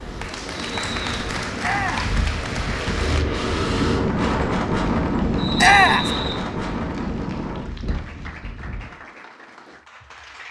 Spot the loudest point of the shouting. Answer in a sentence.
The volume of the shouting peaks at 6 seconds.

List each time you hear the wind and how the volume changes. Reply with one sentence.
The wind can be heard from 0.0 to 8.9 s, getting louder then quieter.